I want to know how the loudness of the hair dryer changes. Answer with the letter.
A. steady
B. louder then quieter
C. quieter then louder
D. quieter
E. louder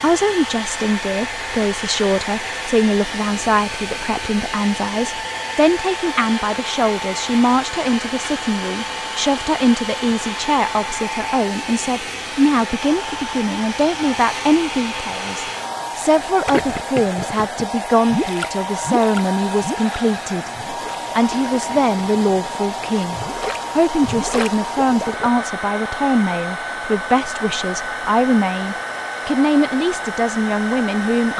A.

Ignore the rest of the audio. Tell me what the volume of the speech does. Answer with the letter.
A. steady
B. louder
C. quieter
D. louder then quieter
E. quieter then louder
A.